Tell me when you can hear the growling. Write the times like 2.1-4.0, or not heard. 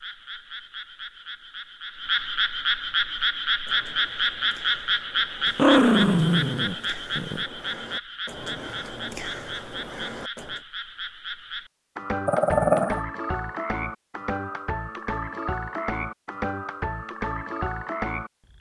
5.5-7.5, 12.2-13.0.